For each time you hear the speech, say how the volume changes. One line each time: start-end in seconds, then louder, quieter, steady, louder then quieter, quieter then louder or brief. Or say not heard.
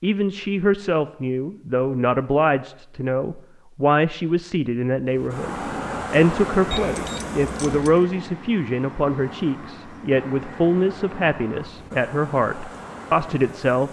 0.0-13.8 steady.